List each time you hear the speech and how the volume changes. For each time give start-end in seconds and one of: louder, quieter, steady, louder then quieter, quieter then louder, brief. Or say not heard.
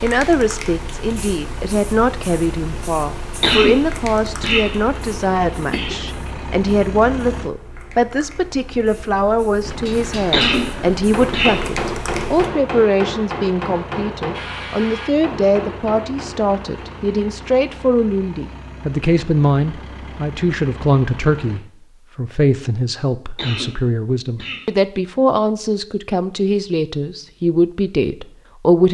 0.0-28.8 steady.